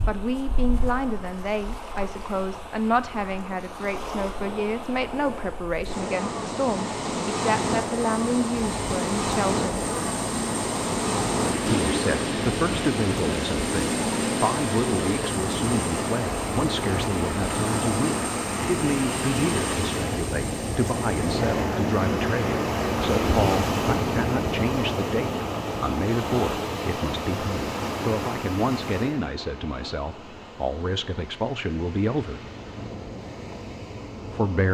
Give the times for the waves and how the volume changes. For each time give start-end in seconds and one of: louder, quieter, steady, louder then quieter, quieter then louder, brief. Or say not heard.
0.0-34.6 louder then quieter.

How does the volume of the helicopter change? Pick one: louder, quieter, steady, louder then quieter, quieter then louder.
steady.